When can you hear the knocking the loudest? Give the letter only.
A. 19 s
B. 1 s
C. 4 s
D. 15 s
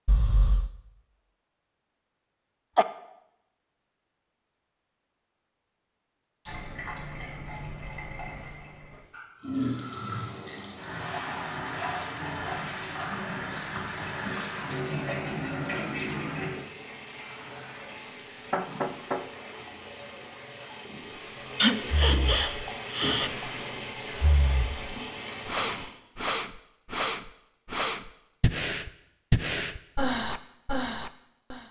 A.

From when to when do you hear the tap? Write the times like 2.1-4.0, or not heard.
6.5-25.9.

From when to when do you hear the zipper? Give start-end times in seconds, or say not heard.
not heard.